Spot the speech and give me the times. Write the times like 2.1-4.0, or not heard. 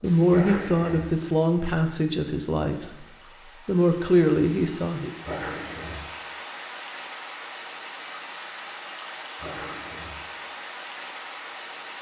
0.0-5.2.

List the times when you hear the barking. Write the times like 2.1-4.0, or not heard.
0.3-1.1, 5.2-6.1, 9.3-10.2.